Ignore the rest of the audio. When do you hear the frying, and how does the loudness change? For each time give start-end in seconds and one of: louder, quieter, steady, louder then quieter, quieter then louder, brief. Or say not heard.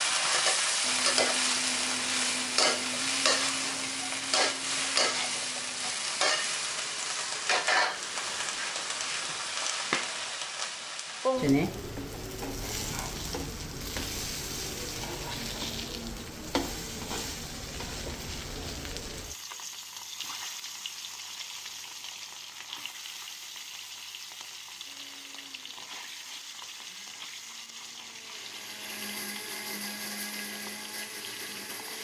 0.0-31.9 quieter.